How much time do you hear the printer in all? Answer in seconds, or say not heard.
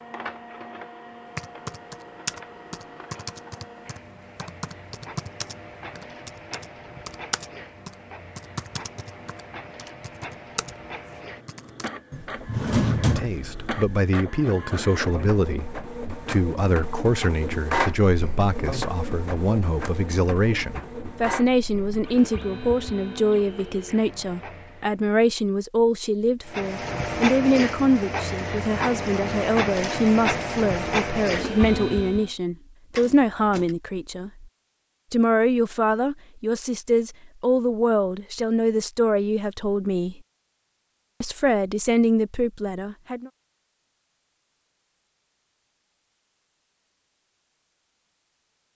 31 s.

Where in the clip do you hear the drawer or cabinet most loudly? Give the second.
13 s.